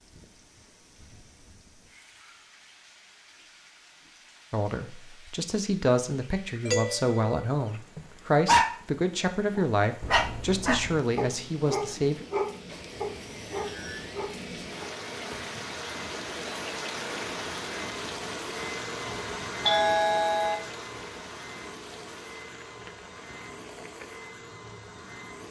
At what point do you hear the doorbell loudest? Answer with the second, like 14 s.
20 s.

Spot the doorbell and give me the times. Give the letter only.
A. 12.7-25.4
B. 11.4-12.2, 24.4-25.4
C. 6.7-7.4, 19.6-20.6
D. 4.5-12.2
C.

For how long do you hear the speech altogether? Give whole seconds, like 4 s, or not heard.
8 s.